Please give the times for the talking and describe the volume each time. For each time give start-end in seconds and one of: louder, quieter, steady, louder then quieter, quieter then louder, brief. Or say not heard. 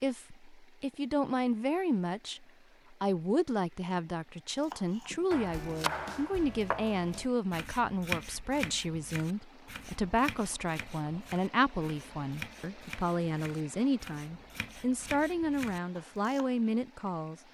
0.0-17.4 steady.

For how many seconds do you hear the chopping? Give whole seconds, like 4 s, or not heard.
12 s.